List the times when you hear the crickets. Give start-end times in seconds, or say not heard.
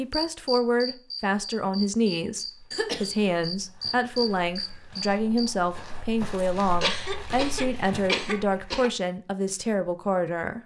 0.1-5.5.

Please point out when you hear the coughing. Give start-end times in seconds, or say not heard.
2.7-3.3, 6.8-8.9.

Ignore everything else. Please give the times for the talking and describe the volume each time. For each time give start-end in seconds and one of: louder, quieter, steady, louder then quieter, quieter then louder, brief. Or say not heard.
0.0-10.6 steady.